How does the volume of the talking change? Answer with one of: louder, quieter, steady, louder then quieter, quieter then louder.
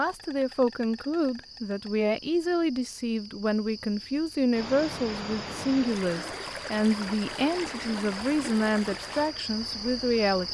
steady.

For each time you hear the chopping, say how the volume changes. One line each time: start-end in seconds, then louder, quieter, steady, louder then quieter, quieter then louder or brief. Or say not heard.
not heard.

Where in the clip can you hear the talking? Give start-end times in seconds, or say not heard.
0.0-10.4.